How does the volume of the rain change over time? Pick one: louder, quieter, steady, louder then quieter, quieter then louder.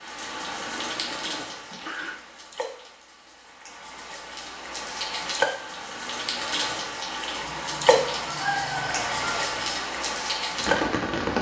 quieter then louder.